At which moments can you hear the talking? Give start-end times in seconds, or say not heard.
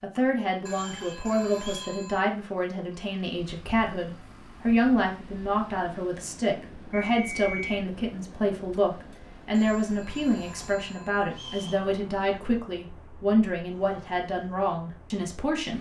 0.0-15.7.